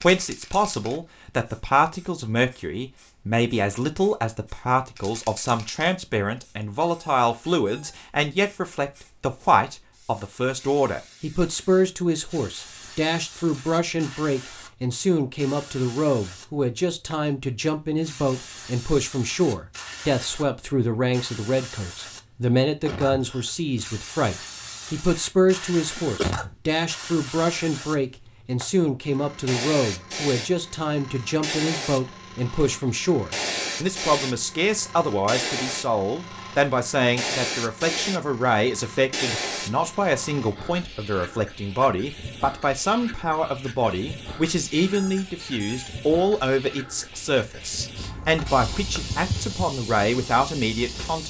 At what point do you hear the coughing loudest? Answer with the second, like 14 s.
26 s.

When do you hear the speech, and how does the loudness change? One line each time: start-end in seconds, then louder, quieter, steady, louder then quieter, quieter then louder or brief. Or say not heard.
0.0-51.2 steady.